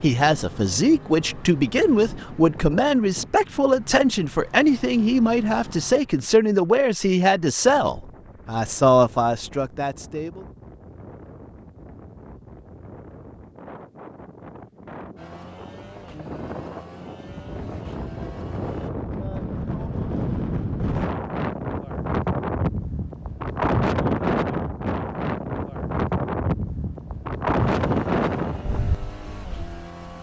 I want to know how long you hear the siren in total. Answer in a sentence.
The siren can't be heard in this clip.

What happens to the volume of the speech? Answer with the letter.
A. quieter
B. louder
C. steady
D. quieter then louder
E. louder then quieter
C.